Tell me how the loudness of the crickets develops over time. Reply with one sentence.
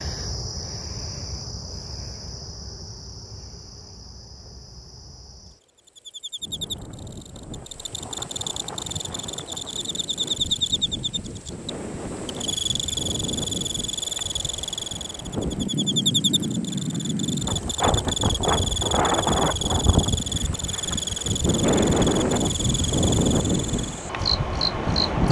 The volume of the crickets goes up.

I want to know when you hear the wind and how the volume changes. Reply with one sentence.
The wind can be heard from 6.4 to 25.2 s, getting louder.